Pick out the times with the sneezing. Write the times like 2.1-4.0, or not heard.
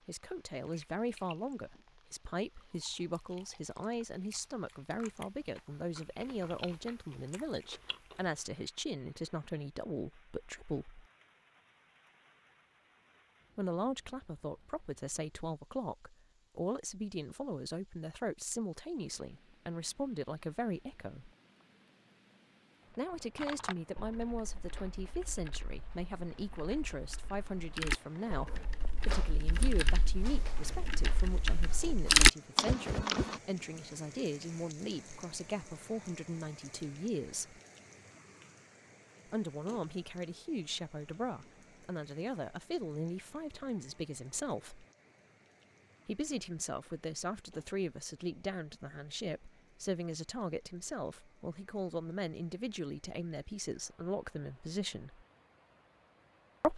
not heard.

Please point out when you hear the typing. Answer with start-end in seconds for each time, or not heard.
23.4-33.4.